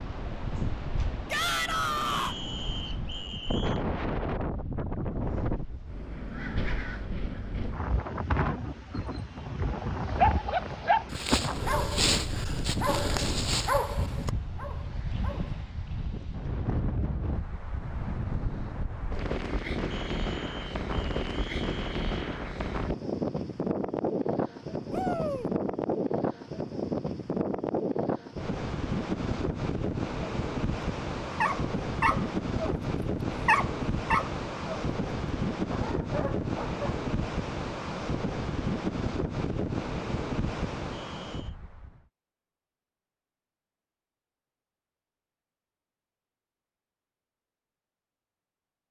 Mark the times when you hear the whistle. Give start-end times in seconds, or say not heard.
2.1-3.9, 19.9-22.2, 40.9-41.5.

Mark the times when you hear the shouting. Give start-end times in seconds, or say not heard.
1.3-2.4, 24.9-25.5.